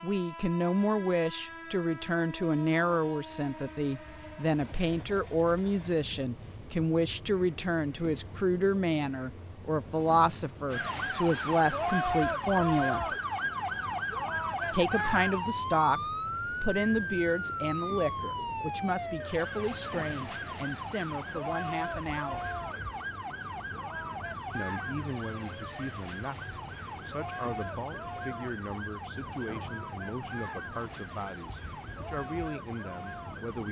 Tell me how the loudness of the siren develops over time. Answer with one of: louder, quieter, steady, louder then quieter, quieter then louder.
quieter.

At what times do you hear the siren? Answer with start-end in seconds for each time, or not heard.
10.7-33.6.